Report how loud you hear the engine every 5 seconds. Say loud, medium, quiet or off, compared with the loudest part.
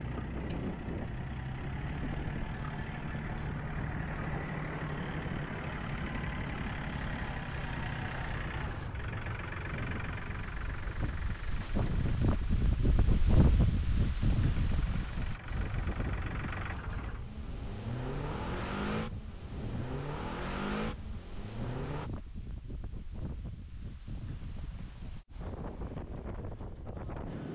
loud, loud, medium, loud, loud, off.